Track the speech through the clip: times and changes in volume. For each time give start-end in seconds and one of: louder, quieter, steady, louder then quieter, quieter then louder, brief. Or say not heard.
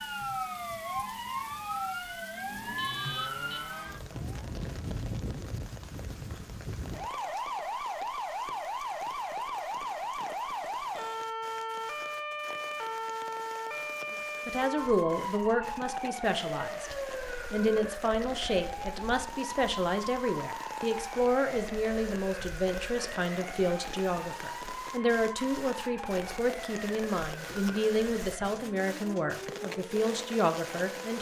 14.1-31.1 steady.